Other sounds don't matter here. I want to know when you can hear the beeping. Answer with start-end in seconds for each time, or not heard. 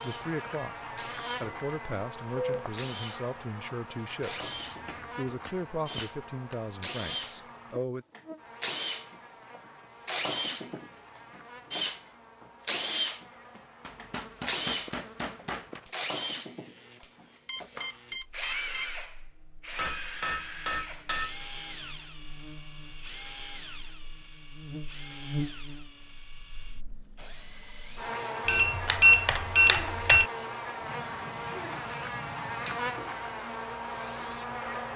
1.4-2.7, 17.4-18.9, 28.4-30.2.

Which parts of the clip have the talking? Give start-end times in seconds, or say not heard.
0.0-8.1.